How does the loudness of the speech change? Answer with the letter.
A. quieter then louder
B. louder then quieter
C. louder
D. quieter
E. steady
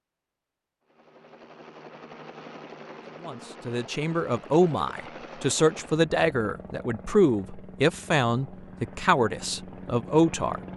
E.